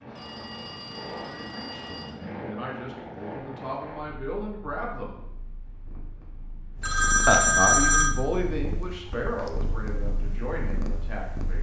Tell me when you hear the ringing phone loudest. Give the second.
8 s.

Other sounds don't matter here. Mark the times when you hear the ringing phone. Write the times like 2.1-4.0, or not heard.
0.1-2.1, 6.8-8.2.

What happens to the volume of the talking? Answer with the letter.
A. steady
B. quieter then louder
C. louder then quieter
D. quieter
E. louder
C.